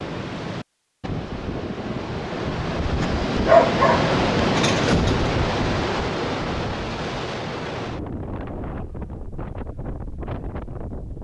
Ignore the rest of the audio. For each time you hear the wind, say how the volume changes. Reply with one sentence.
The wind can be heard from 0.0 to 11.1 s, getting louder then quieter.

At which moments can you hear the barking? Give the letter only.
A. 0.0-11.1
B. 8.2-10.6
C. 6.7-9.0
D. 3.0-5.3
D.